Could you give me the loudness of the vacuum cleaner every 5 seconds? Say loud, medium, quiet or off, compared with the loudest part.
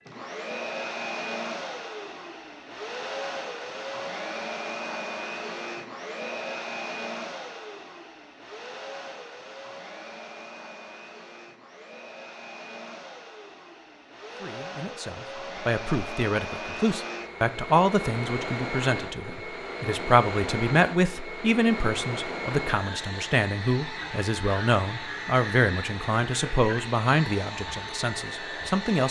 loud, loud, medium, loud, loud, loud.